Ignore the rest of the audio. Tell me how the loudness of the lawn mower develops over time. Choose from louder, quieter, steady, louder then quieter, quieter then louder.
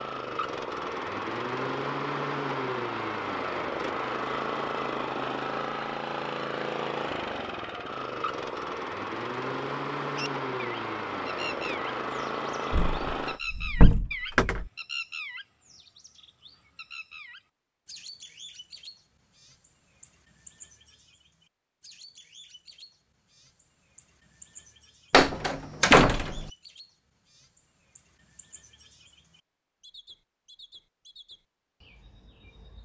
steady.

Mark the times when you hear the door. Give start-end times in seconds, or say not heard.
12.7-14.7, 25.1-26.4.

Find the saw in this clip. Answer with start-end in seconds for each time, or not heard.
not heard.